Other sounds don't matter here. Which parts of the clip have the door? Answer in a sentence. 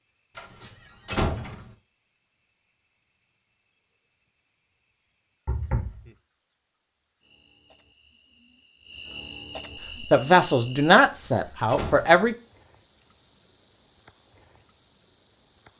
The door can be heard from 0.3 to 1.6 s, from 5.5 to 6.1 s and from 11.0 to 12.3 s.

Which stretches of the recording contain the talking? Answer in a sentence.
You can hear the talking from 10.1 to 12.3 s.